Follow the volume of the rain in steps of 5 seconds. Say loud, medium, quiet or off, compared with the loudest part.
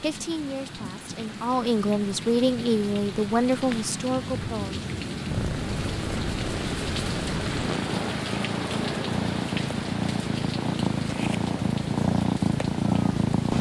medium, loud, medium.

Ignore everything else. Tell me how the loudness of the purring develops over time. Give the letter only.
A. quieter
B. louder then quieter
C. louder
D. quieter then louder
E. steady
C.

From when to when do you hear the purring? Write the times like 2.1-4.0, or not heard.
5.3-13.5.